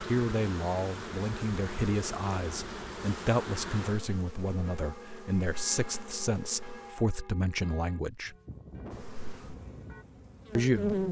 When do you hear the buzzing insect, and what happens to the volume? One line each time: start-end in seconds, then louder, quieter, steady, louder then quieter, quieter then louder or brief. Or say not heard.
0.0-6.9 quieter
8.9-11.0 brief.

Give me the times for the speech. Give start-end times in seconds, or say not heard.
0.1-8.3, 10.6-11.0.